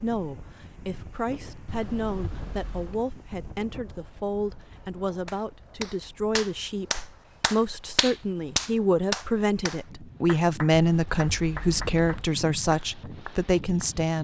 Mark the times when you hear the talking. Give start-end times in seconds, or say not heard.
0.0-14.1.